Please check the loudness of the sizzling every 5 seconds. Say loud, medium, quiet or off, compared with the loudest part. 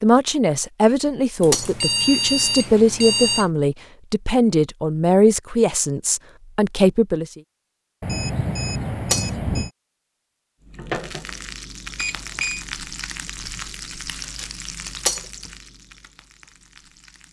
off, off, loud, medium.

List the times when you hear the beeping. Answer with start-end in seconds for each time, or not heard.
1.4-3.5, 8.0-9.7, 11.9-12.7.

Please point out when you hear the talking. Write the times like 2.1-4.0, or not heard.
0.0-7.4.